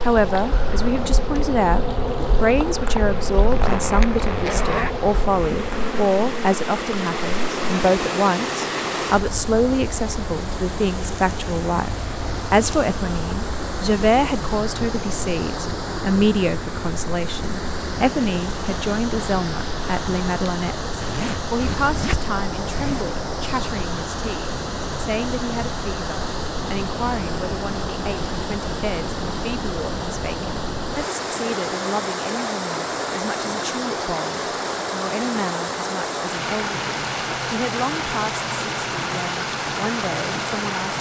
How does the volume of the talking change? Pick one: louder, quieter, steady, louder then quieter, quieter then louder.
quieter.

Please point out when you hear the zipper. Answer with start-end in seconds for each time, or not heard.
3.5-5.0, 21.0-23.1.